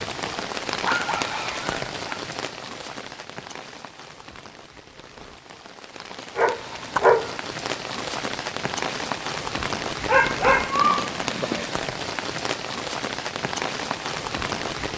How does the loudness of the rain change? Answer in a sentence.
The loudness of the rain goes down, then up.